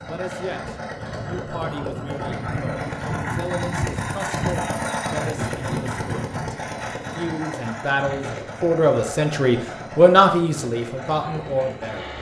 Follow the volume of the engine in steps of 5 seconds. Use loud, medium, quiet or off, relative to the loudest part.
loud, loud, medium.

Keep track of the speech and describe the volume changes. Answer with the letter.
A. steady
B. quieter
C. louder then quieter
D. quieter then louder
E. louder
E.